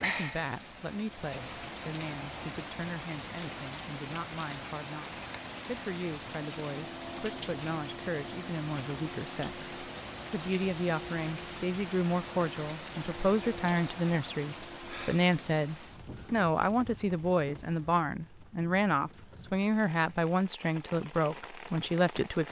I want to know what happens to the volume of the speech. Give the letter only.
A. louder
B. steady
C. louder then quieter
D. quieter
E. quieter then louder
A.